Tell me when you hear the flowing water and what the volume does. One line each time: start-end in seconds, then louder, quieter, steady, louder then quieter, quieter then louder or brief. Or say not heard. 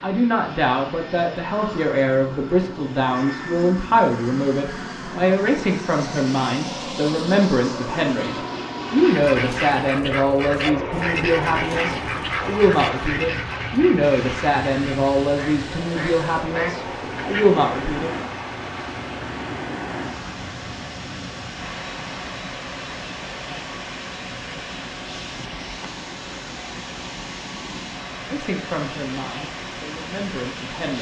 14.0-30.9 steady.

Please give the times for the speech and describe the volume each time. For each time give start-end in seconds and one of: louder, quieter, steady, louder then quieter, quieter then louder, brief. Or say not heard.
0.0-18.1 steady
28.2-30.9 brief.